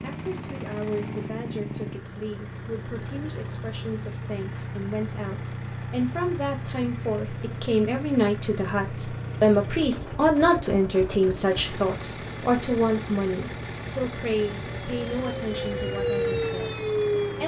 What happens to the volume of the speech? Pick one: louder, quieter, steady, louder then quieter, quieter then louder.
louder then quieter.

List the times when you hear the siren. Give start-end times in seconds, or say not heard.
14.1-17.4.